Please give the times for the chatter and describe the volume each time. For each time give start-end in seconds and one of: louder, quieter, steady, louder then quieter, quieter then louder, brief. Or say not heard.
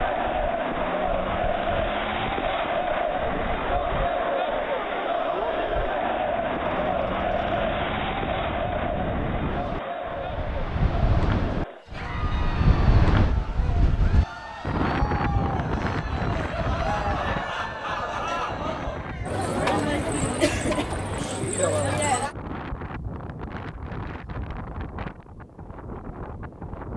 0.0-22.4 quieter then louder.